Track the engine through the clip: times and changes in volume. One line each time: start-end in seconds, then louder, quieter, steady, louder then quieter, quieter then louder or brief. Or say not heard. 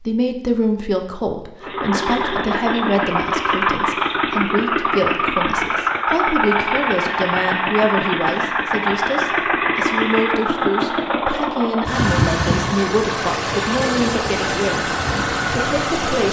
1.6-16.2 steady.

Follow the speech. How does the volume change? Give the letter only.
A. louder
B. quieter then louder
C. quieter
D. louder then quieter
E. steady
E.